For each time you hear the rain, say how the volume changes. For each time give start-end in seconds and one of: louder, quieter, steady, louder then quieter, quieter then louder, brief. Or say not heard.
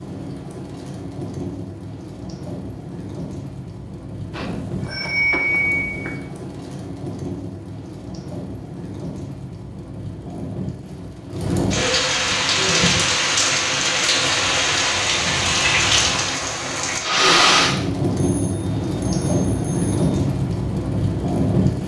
0.0-21.8 louder.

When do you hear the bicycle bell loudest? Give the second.
5 s.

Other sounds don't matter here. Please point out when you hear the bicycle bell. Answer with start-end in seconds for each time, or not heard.
4.3-6.2, 18.2-19.9.